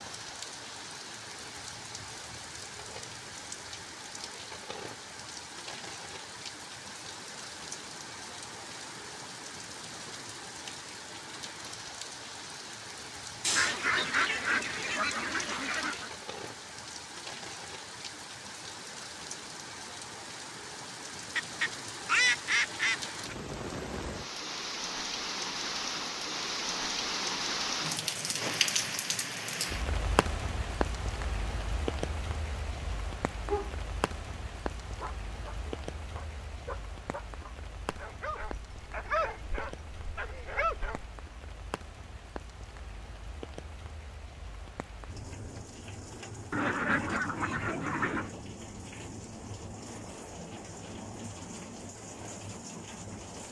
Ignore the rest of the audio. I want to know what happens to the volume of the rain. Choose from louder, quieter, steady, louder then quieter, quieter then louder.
louder then quieter.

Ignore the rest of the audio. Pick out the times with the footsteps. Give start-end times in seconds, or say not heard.
not heard.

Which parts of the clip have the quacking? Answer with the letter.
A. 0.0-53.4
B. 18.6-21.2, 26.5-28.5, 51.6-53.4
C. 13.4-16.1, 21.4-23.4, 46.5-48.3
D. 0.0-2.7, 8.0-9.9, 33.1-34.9
C.